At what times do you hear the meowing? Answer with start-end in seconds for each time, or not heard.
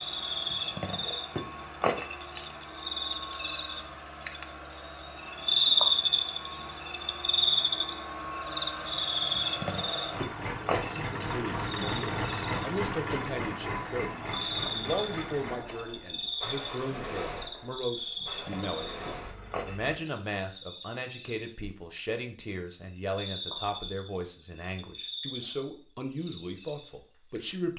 not heard.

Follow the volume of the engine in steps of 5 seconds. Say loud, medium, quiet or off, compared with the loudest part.
medium, medium, loud, medium, off, off.